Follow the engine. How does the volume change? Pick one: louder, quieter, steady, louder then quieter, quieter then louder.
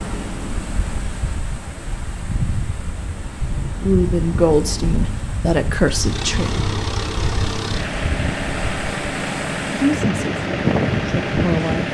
louder.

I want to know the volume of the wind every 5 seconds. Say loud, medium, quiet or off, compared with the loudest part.
medium, medium, loud.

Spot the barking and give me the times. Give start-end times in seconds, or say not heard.
not heard.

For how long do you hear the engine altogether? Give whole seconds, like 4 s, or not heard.
12 s.